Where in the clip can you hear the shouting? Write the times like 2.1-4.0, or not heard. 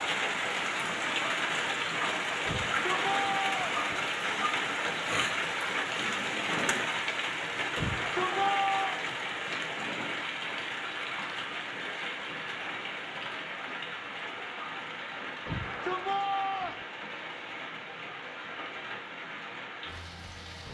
2.5-3.9, 7.8-9.0, 15.4-16.9.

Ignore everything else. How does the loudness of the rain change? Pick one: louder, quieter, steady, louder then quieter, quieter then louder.
quieter.